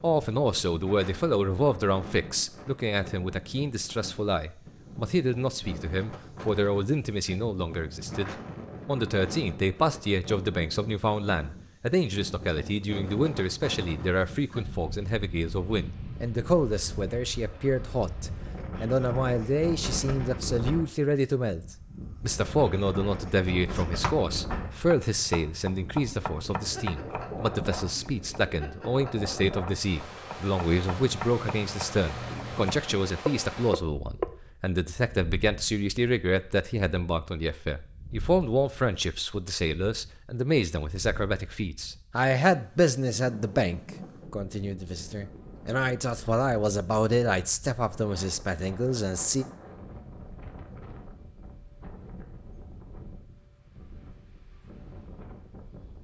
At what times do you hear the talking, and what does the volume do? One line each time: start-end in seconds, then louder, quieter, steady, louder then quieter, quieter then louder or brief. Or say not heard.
0.0-49.5 steady.